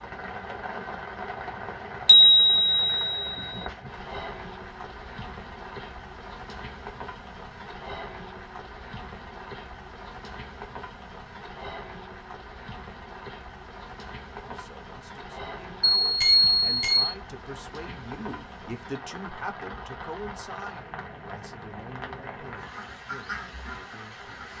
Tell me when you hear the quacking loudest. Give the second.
23 s.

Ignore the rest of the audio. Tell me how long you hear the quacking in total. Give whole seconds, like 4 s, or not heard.
2 s.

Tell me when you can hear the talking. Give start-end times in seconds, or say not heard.
14.4-24.5.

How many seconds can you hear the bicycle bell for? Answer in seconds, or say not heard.
3 s.